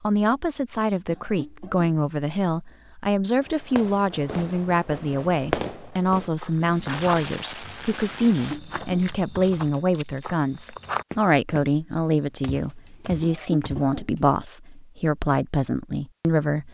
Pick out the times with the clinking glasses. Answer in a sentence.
You can't hear the clinking glasses here.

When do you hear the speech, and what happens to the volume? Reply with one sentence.
The speech can be heard from 0.0 to 16.6 s, at a steady volume.